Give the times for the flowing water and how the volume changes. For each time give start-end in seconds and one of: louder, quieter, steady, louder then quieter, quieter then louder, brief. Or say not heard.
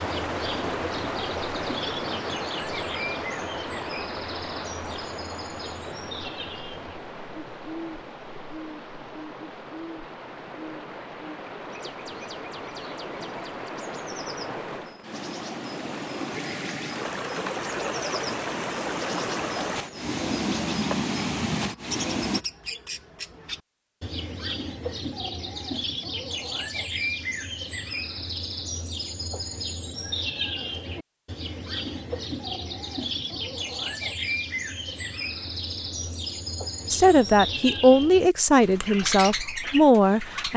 0.0-22.4 quieter then louder.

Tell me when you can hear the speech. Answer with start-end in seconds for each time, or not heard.
36.9-40.5.